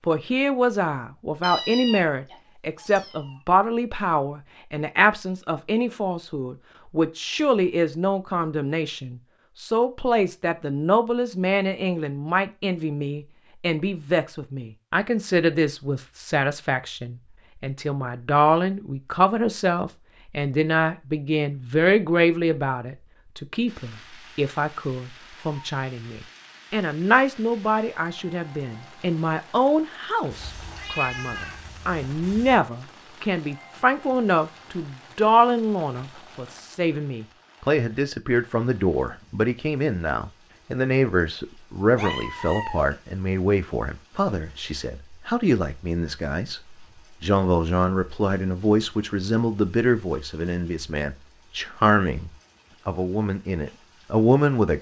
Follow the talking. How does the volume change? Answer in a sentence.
The volume of the talking stays about the same.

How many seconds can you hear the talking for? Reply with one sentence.
The talking can be heard for 54 seconds in total.